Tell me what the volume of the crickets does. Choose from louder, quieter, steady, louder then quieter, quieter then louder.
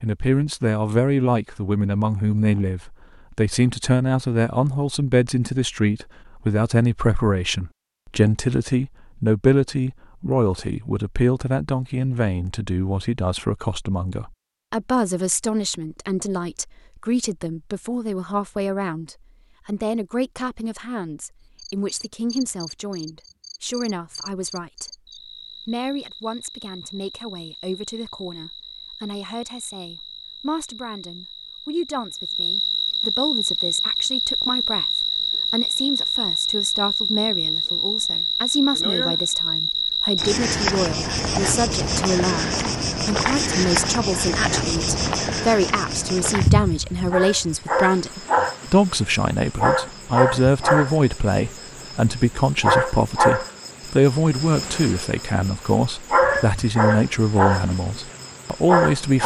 louder.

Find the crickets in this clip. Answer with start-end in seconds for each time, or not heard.
21.6-59.2.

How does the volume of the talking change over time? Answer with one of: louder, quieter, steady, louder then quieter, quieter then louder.
quieter then louder.